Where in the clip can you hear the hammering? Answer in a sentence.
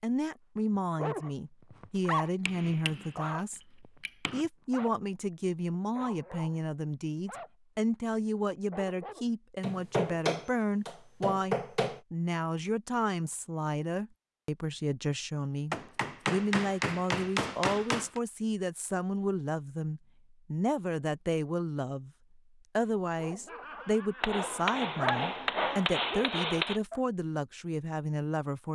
The hammering can be heard from 2.5 to 3.1 s, from 4.0 to 4.5 s, from 9.6 to 12.0 s, from 15.7 to 18.2 s and from 24.2 to 26.8 s.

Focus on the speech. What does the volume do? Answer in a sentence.
The loudness of the speech stays about the same.